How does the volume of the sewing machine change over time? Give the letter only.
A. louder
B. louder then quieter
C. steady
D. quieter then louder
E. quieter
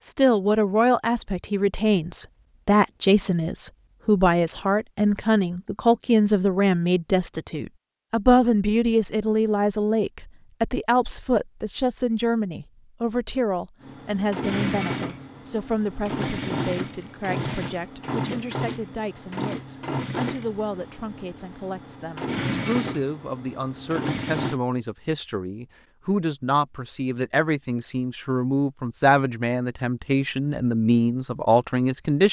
D.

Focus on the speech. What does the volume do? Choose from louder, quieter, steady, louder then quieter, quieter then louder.
quieter then louder.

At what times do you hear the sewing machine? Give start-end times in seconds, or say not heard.
13.8-24.6.